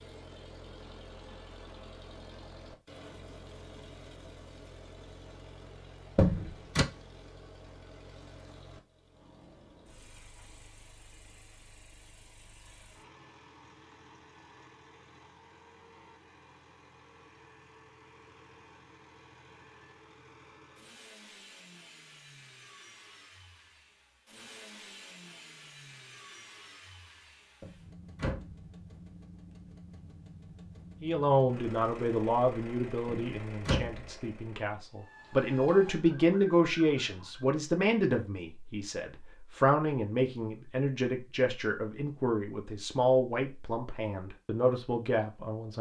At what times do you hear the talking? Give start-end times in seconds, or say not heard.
31.0-45.7.